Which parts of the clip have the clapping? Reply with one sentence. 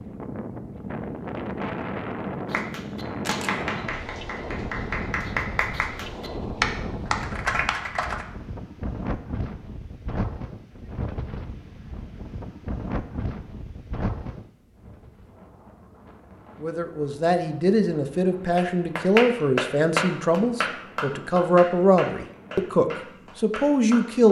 The clapping can be heard from 2.5 to 8.2 s and from 18.6 to 24.2 s.